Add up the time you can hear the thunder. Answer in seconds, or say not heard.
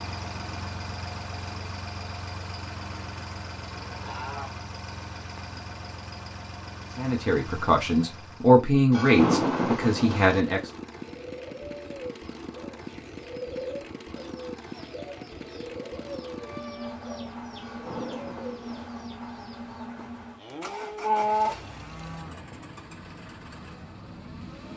3 s.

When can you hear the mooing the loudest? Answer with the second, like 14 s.
21 s.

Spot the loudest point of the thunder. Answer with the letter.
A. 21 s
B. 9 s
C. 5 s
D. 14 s
B.